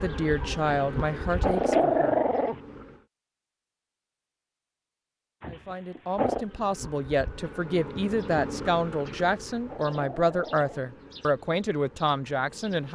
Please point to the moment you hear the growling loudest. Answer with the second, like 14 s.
2 s.